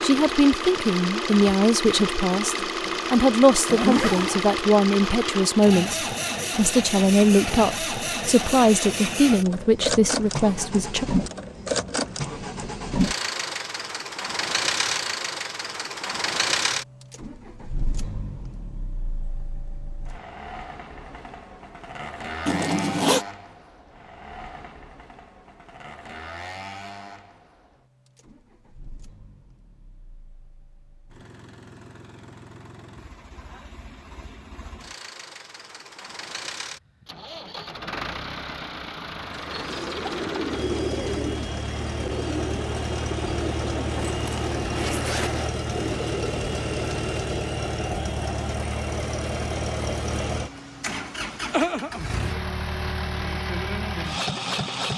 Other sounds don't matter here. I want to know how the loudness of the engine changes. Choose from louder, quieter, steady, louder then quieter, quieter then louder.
quieter then louder.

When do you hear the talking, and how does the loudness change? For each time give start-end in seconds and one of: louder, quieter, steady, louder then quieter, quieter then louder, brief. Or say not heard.
0.0-11.1 steady.